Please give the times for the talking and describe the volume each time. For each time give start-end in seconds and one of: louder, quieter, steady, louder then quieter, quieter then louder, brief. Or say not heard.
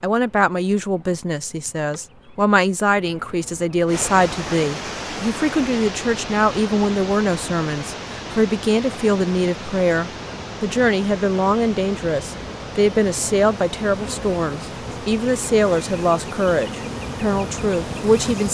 0.0-18.4 steady.